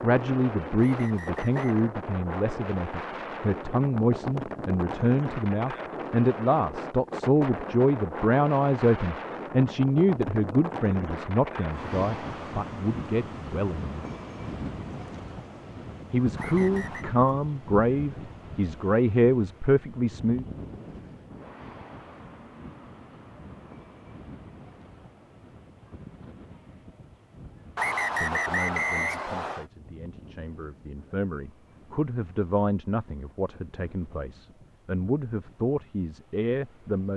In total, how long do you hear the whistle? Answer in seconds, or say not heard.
4 s.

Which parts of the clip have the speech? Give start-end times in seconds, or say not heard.
0.0-13.9, 16.1-20.4, 28.2-37.1.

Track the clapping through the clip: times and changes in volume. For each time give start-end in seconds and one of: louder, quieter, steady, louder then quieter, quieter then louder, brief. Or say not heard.
not heard.